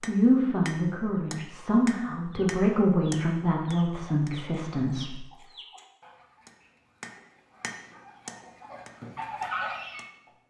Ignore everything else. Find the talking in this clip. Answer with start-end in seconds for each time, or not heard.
0.1-5.2.